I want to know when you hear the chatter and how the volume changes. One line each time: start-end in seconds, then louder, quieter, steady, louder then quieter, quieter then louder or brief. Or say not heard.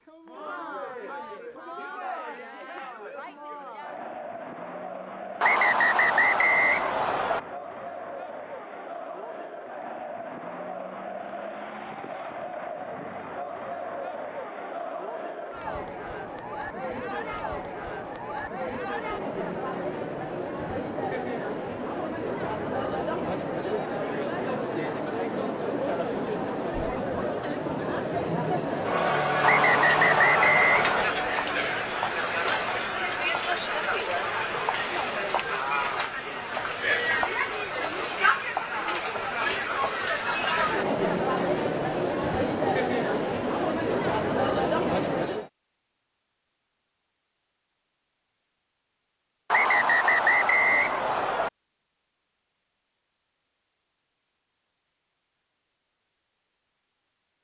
0.0-45.5 louder.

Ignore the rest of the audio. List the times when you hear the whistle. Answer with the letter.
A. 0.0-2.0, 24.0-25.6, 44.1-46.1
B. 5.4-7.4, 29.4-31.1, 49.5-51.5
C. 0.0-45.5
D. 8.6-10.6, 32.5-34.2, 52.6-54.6
B.